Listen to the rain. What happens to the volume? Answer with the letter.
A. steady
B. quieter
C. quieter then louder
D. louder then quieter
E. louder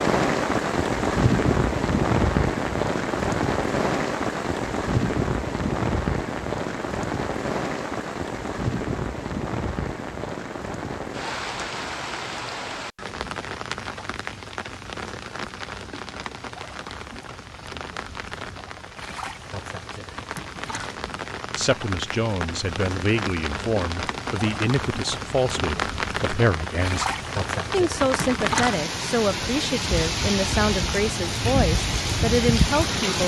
C.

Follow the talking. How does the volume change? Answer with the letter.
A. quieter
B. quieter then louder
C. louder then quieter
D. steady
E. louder
D.